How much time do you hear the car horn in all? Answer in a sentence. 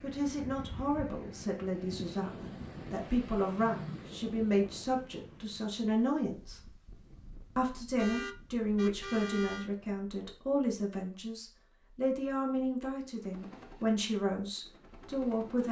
The car horn can be heard for 2 seconds in total.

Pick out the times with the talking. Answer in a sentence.
You can hear the talking from 0.0 to 6.6 s and from 7.5 to 15.6 s.